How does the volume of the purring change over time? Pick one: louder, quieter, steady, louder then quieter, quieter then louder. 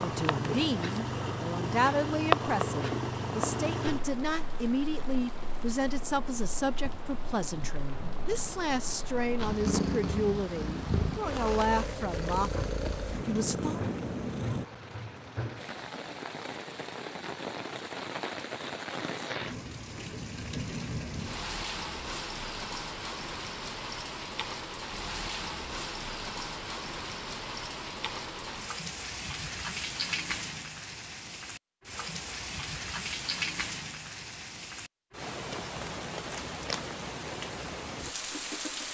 quieter then louder.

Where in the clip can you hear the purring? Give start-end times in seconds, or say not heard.
0.0-14.7.